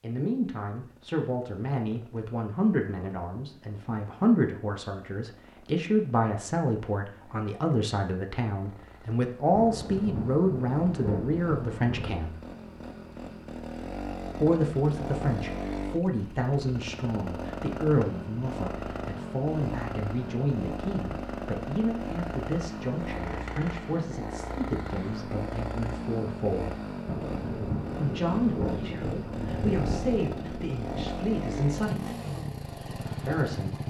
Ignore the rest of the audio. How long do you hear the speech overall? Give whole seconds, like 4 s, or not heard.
30 s.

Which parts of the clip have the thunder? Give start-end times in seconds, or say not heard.
9.5-12.2, 27.1-31.1.